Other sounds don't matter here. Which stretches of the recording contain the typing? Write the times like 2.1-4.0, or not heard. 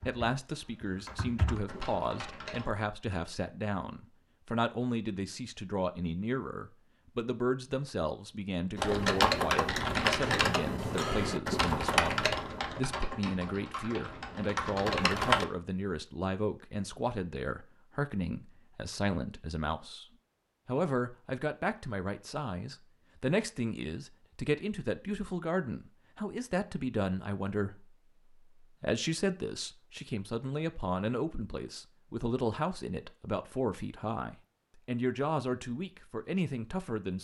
0.0-2.7, 8.8-15.4.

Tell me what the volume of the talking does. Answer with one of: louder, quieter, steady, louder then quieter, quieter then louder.
steady.